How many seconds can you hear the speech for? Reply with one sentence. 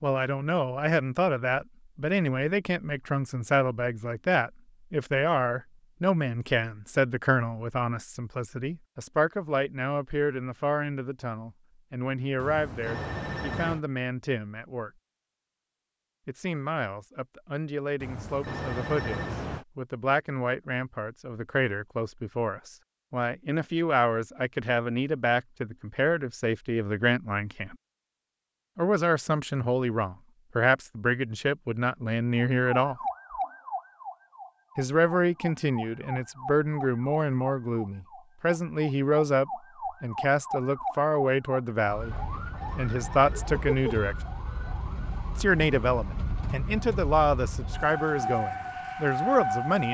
You can hear the speech for 44 seconds altogether.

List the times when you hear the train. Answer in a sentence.
The train can't be heard in this clip.